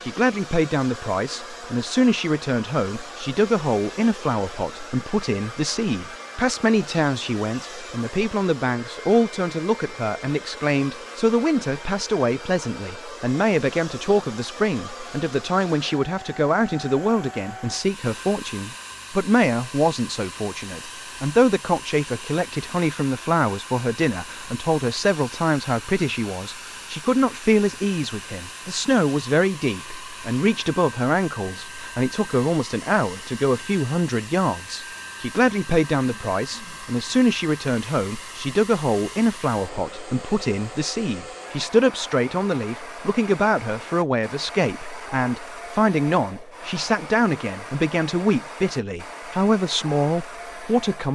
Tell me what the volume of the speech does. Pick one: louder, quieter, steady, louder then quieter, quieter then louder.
steady.